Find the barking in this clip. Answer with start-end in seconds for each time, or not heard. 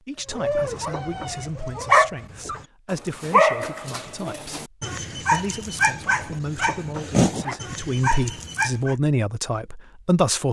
0.3-8.9.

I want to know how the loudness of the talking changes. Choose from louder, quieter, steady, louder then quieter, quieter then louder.
louder.